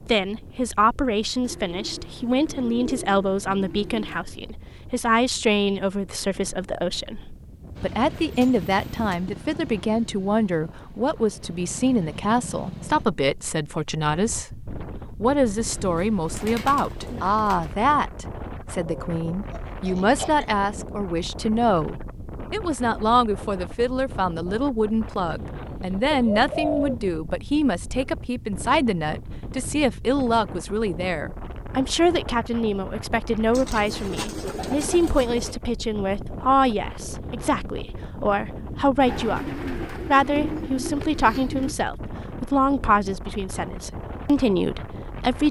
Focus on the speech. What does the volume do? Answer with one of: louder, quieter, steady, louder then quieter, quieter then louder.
steady.